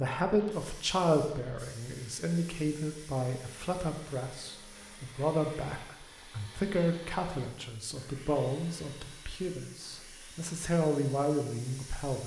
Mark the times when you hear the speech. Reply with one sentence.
You can hear the speech from 0.0 to 12.2 s.